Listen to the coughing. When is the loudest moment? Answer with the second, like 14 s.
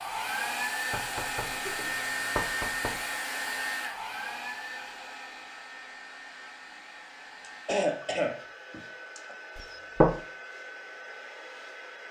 8 s.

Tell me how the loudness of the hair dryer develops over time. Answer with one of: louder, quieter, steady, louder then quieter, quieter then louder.
quieter.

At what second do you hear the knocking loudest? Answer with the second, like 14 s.
10 s.